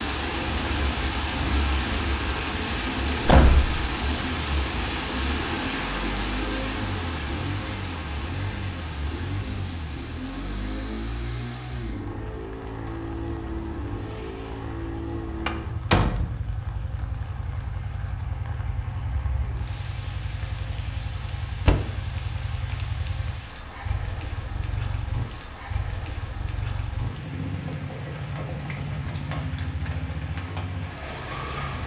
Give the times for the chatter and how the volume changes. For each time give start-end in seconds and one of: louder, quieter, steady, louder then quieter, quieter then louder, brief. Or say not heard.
not heard.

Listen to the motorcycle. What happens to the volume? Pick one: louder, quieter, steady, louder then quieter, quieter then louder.
steady.